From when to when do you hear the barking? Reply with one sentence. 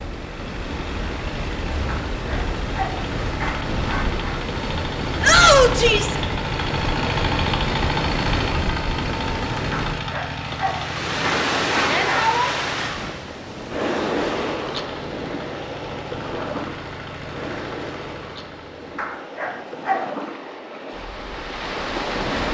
You can hear the barking from 1.9 to 4.4 s, from 9.7 to 12.3 s and from 18.9 to 20.1 s.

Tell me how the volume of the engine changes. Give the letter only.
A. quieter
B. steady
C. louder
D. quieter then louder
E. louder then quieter
E.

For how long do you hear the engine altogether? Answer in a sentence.
You can hear the engine for 19 seconds altogether.